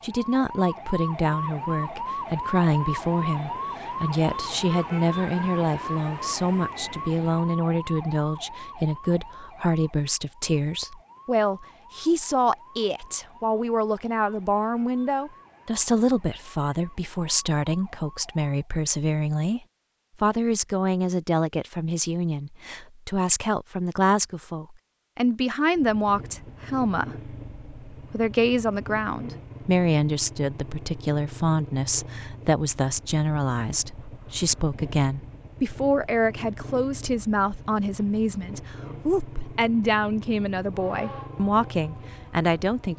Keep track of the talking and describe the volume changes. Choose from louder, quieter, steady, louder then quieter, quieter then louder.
steady.